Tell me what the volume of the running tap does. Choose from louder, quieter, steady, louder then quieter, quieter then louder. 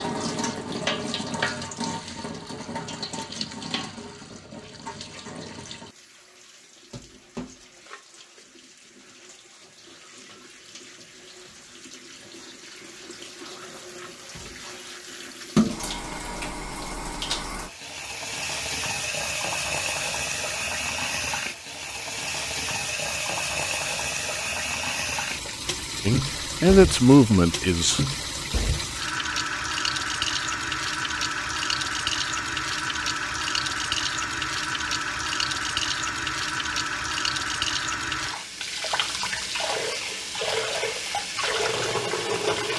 louder.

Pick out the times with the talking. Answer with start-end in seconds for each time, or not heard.
26.1-28.1.